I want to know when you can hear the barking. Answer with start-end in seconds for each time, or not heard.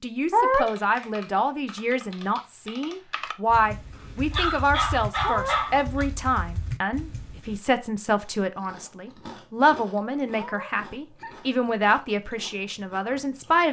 4.0-6.0.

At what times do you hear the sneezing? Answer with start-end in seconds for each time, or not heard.
0.3-0.8, 5.2-5.7, 10.3-11.4.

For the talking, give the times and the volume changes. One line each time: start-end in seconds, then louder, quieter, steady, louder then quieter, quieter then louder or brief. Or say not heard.
0.0-13.6 steady.